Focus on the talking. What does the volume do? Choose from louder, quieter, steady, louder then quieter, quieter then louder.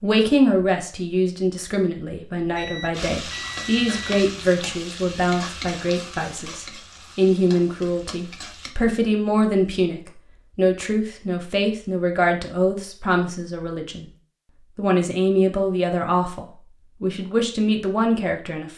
steady.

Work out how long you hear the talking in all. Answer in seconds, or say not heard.
18 s.